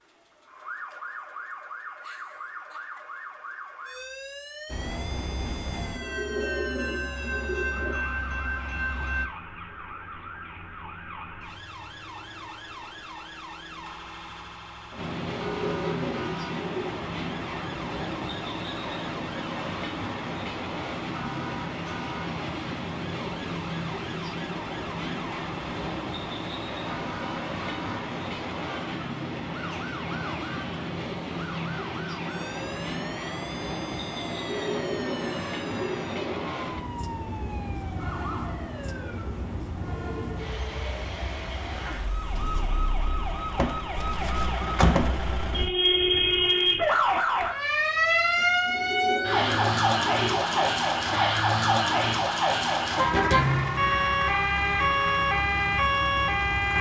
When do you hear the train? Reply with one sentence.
The train can be heard from 4.7 to 9.3 s and from 14.9 to 43.2 s.